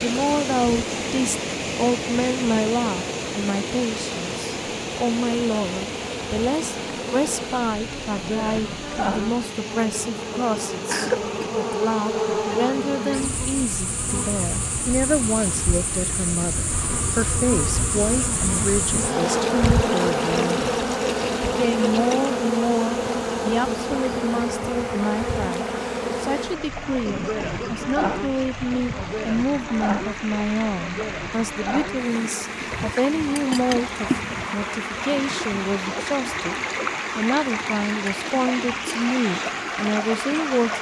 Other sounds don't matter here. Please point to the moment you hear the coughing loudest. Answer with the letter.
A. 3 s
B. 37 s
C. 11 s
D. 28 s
C.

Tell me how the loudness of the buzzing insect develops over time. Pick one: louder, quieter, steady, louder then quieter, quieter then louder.
louder then quieter.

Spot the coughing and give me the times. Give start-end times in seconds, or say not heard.
10.8-11.5, 27.1-28.2.